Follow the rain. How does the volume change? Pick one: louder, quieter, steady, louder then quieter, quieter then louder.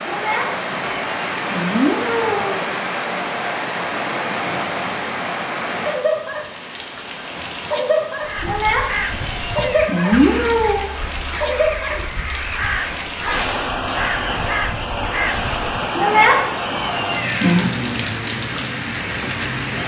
steady.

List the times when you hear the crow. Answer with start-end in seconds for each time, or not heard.
8.2-15.9.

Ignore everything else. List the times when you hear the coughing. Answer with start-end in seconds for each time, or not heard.
not heard.